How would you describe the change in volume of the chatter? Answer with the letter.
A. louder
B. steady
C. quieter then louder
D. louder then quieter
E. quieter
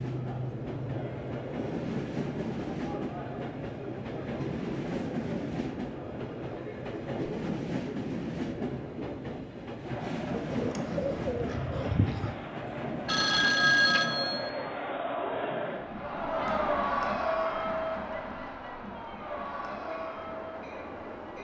A.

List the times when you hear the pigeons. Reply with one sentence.
The pigeons can be heard from 10.3 to 12.3 s.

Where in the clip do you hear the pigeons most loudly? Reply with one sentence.
The volume of the pigeons peaks at 12 seconds.